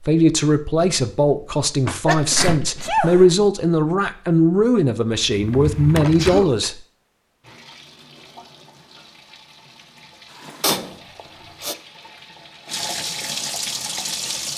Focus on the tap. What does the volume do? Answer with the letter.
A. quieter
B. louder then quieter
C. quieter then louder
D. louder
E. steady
D.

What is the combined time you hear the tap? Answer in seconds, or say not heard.
7 s.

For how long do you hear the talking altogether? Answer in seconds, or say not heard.
7 s.